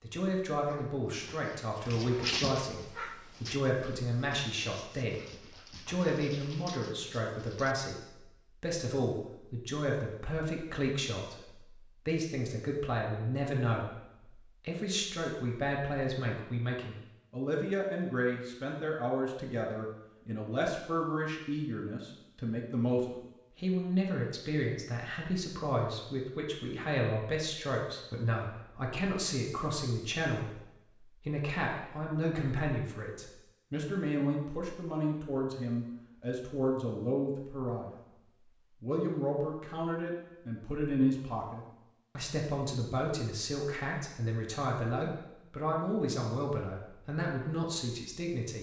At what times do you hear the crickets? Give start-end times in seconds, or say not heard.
not heard.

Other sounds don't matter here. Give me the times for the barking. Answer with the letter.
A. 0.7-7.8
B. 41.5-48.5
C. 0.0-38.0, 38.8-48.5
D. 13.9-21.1
A.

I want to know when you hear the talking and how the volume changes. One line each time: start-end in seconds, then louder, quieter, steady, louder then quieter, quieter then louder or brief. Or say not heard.
0.0-38.0 steady
38.8-48.5 steady.